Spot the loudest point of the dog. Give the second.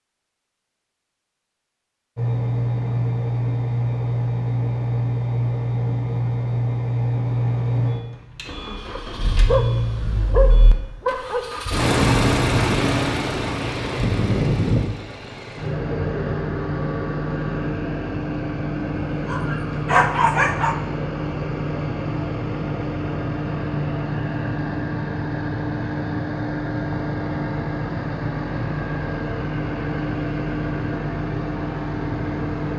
20 s.